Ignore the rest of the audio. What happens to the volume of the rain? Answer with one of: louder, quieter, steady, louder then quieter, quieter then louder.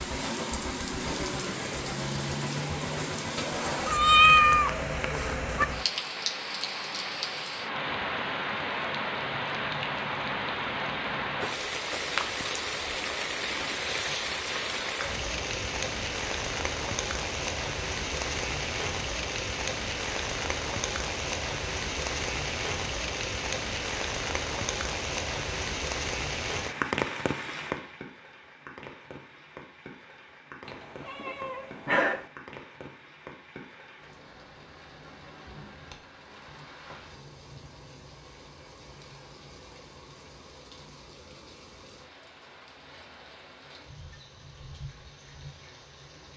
quieter.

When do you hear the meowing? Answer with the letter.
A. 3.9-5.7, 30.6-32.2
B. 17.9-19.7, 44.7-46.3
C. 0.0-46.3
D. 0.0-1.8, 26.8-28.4
A.